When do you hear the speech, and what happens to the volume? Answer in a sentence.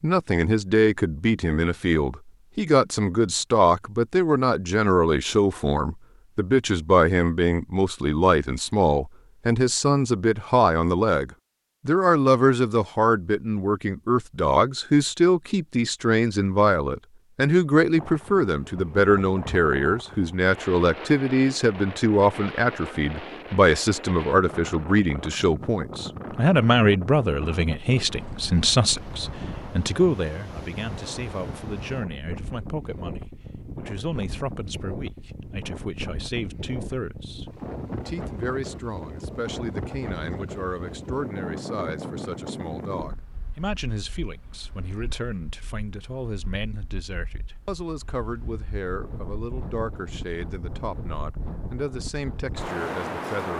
The speech can be heard from 0.0 to 53.5 s, getting quieter.